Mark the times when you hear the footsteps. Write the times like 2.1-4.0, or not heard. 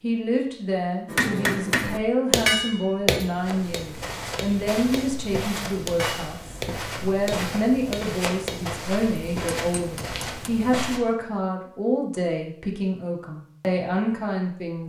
3.4-11.0.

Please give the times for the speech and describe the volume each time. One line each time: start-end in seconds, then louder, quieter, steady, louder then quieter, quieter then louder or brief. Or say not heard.
0.0-14.8 steady.